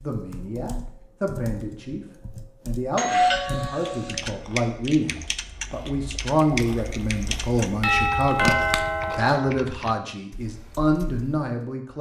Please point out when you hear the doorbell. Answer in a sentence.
The doorbell can be heard from 3.0 to 4.2 s and from 7.8 to 9.5 s.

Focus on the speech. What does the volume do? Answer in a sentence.
The volume of the speech goes up.